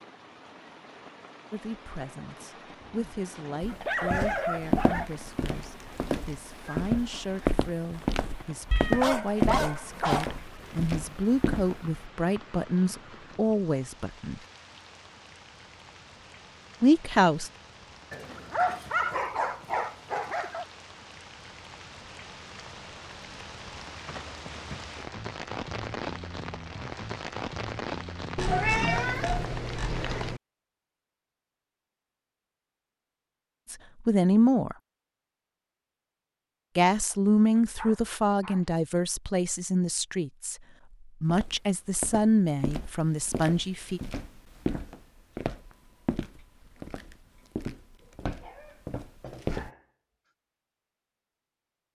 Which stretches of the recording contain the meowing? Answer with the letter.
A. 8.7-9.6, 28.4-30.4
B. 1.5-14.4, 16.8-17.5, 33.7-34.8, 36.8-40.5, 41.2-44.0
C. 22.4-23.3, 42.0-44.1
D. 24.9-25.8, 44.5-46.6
A.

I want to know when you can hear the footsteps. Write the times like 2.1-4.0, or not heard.
3.6-12.0, 41.2-49.7.